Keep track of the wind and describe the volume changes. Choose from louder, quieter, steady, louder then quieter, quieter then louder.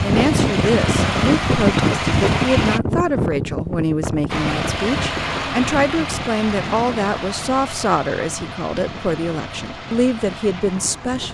quieter.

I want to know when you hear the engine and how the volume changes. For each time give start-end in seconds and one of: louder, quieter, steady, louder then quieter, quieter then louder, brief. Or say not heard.
0.0-2.8 brief
4.2-11.3 quieter.